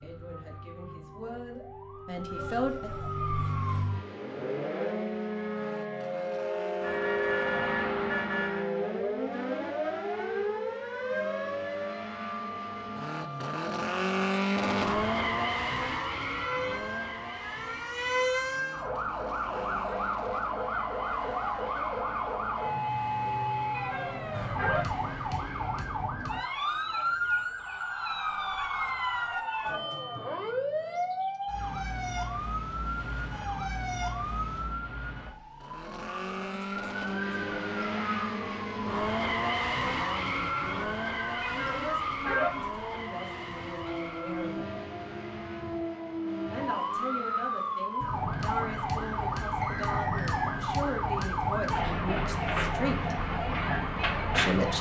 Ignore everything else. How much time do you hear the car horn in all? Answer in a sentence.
The car horn can be heard for 4 seconds in total.